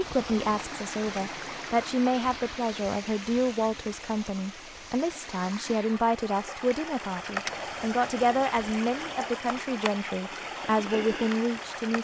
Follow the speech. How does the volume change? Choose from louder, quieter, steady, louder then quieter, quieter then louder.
steady.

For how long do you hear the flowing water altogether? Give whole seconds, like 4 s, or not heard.
12 s.